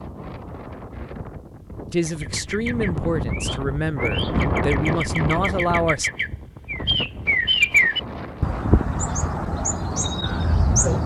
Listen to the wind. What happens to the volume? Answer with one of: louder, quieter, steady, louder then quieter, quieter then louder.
louder then quieter.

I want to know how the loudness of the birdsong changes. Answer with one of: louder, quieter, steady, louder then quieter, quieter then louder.
louder then quieter.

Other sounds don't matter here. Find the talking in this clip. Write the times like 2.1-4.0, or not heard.
1.9-6.1.